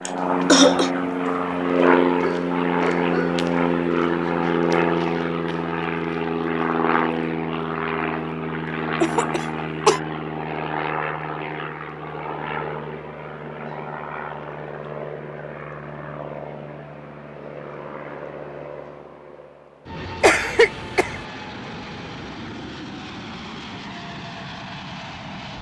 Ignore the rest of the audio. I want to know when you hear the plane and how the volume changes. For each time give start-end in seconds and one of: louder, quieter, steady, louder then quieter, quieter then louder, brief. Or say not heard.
0.0-25.5 quieter.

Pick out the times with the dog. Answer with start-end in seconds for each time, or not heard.
2.2-3.5.